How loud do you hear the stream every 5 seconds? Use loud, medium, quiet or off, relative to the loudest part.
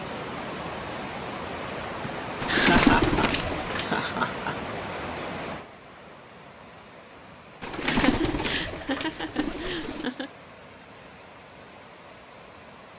loud, medium, quiet.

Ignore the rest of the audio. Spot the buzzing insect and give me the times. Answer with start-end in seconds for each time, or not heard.
not heard.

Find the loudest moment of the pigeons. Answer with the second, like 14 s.
3 s.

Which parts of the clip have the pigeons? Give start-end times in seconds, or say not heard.
2.4-3.9, 7.6-10.1.